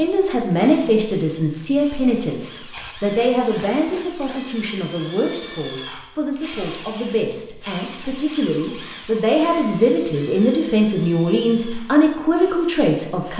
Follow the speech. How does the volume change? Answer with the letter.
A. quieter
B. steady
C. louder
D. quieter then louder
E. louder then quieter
D.